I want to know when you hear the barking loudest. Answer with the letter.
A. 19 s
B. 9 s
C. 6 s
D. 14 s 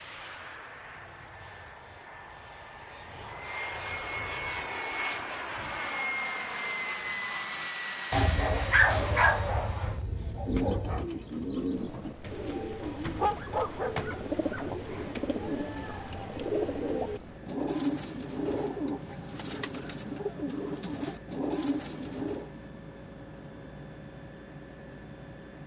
B.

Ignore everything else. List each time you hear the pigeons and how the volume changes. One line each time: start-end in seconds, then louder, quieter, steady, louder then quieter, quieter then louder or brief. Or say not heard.
10.2-22.5 steady.